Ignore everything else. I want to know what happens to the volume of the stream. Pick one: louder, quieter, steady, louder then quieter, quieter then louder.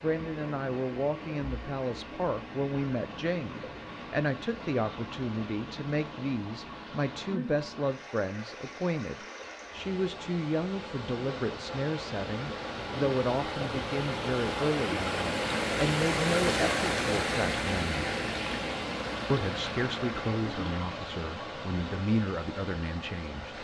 louder then quieter.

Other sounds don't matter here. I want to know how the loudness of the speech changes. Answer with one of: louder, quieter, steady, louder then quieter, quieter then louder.
steady.